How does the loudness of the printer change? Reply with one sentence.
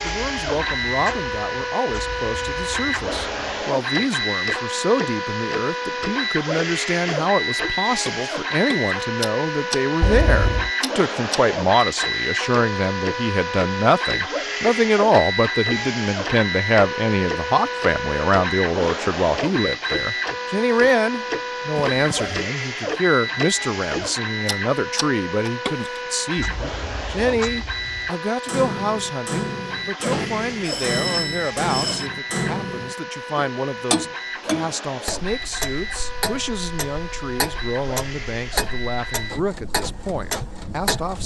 The loudness of the printer goes down.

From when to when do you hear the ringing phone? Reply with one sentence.
The ringing phone can be heard from 10.0 to 10.7 s, from 21.8 to 22.4 s and from 30.1 to 32.1 s.